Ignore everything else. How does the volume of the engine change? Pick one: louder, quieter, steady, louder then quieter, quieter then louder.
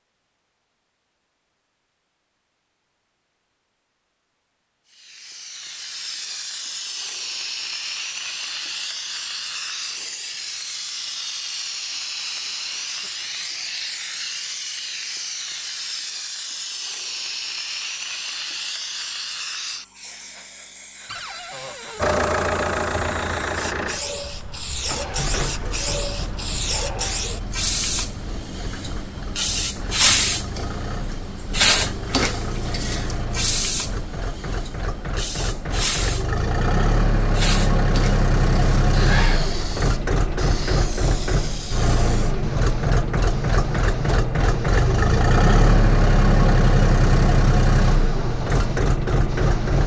quieter then louder.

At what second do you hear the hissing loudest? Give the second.
30 s.